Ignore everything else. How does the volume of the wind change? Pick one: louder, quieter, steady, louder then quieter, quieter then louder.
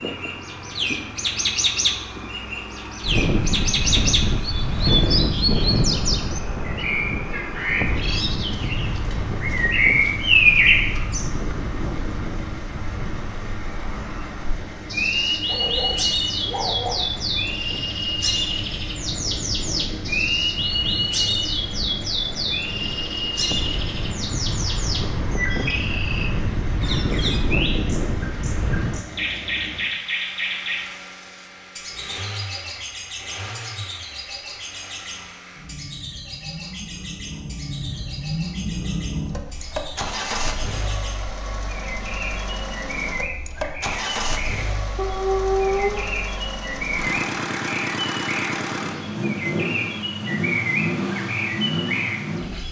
quieter then louder.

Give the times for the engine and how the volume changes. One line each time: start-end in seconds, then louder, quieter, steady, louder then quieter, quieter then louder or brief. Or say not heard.
0.0-52.6 louder.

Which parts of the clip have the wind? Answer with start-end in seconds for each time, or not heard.
0.0-29.1.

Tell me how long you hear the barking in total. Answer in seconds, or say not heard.
3 s.